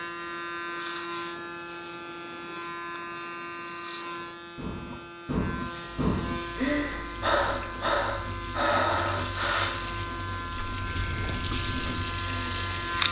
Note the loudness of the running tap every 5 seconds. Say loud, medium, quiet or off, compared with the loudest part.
quiet, medium, loud.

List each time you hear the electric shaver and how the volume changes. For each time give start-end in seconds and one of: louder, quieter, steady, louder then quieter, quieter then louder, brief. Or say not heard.
0.0-13.0 steady.